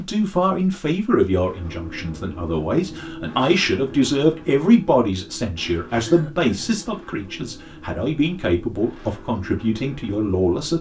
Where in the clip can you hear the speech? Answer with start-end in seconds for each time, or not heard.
0.0-10.7.